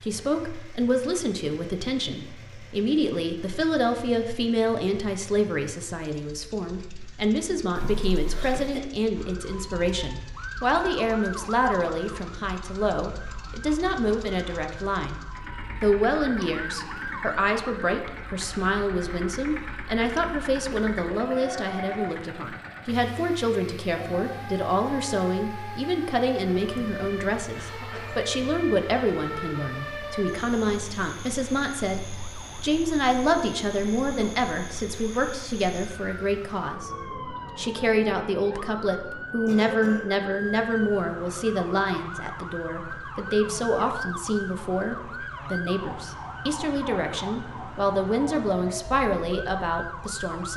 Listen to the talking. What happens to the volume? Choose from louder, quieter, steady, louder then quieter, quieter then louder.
steady.